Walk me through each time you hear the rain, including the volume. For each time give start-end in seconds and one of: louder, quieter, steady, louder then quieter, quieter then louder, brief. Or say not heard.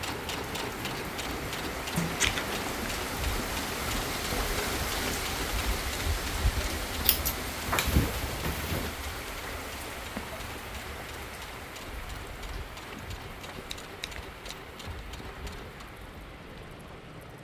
0.0-17.3 quieter.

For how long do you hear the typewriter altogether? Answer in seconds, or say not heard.
not heard.